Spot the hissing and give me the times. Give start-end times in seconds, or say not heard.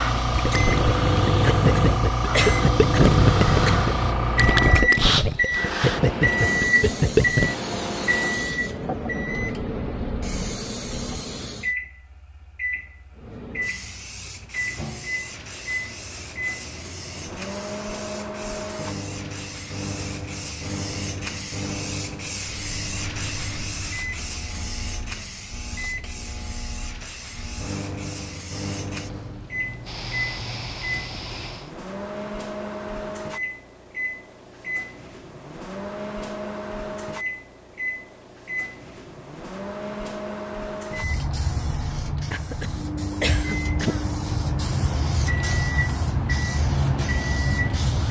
0.0-11.8, 13.2-31.7, 40.9-48.0.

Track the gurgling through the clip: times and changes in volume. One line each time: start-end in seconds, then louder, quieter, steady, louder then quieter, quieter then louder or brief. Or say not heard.
0.2-7.5 steady.